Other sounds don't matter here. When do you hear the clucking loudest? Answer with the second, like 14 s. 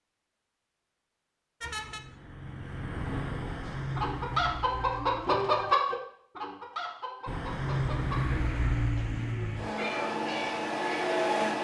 6 s.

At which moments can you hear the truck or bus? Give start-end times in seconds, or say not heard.
1.6-5.8, 7.2-11.6.